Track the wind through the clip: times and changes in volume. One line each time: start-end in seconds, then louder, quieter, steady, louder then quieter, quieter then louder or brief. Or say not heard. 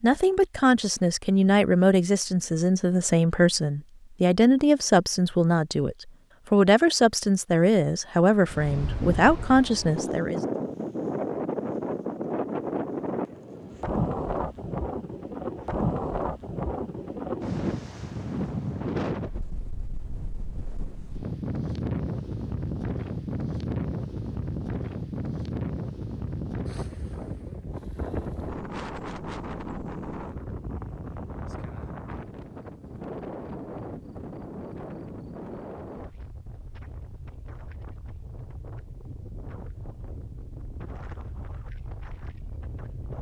8.4-43.1 quieter.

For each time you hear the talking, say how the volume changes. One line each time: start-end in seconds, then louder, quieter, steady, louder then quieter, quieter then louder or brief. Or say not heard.
0.0-10.4 steady.